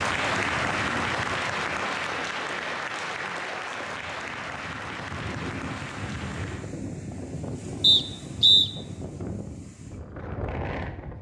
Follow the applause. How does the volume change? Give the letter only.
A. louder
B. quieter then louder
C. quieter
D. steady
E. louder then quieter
C.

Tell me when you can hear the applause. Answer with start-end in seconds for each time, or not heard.
0.0-6.8.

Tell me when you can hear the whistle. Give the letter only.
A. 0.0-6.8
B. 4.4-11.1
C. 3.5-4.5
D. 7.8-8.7
D.